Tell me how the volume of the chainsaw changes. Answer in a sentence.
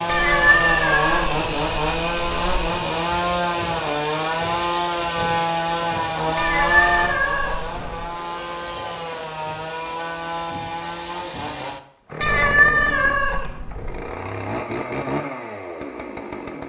The volume of the chainsaw goes down.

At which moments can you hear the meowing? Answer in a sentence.
You can hear the meowing from 0.1 to 2.7 s, from 6.3 to 8.1 s and from 12.2 to 14.1 s.